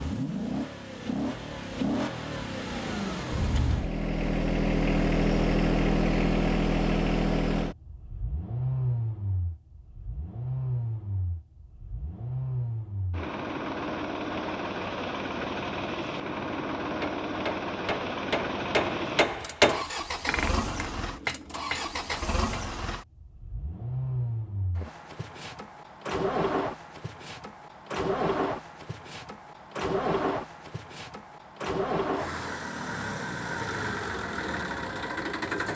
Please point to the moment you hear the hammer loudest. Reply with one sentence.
The loudest moment of the hammer is at 20 seconds.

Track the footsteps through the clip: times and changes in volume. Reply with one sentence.
The footsteps can't be heard in this clip.